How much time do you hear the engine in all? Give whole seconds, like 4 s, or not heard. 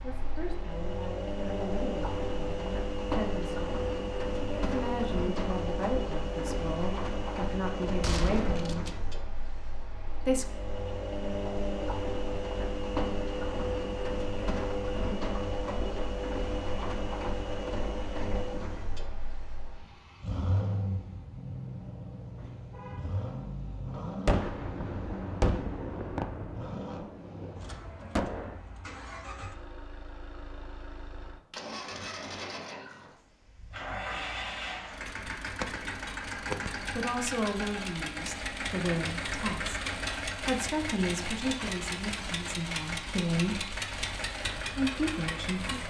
46 s.